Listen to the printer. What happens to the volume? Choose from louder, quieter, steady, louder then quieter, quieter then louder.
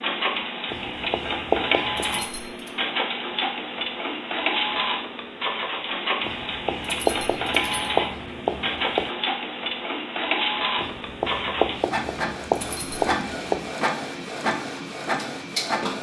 steady.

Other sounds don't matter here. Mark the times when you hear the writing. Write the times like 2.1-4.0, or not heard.
0.7-2.2, 6.2-9.1, 10.8-13.7.